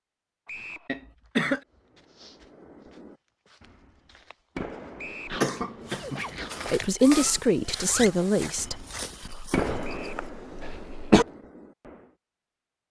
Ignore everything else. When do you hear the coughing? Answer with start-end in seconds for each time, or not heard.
0.8-1.6, 5.3-6.8, 9.2-11.2.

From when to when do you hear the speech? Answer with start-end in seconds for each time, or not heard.
6.7-8.8.